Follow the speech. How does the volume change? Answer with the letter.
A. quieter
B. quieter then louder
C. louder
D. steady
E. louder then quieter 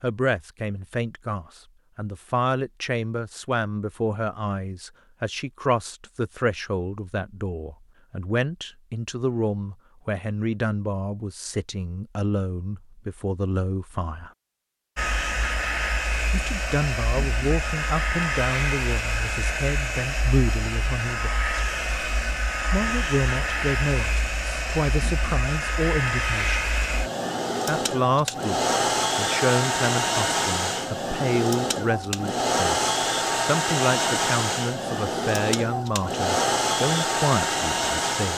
D.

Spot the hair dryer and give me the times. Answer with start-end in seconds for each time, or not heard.
14.9-38.3.